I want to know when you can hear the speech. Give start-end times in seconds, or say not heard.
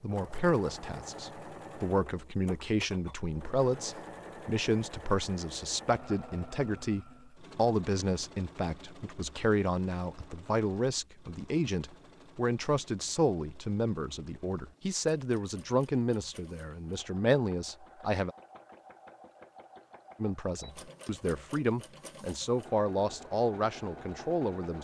0.0-18.3, 20.2-24.7.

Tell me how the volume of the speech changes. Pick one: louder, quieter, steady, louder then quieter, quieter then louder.
steady.